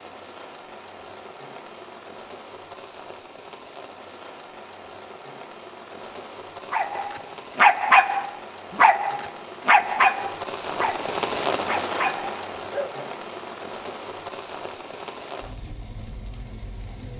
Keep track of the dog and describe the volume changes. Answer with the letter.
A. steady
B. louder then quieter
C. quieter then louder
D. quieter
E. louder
D.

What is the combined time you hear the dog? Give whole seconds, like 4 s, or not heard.
6 s.